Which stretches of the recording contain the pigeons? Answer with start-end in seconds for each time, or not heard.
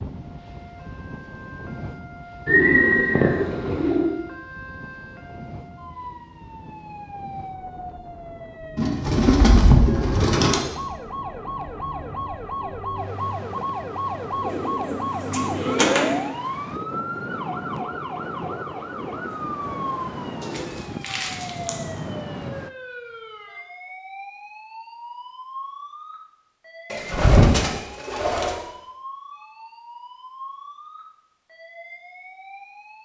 2.5-4.2, 8.8-10.6, 14.4-16.2, 20.4-21.8, 26.9-28.6.